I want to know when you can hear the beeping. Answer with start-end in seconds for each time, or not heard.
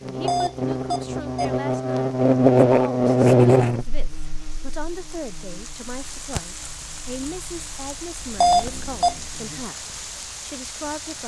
0.2-1.6, 8.4-9.2.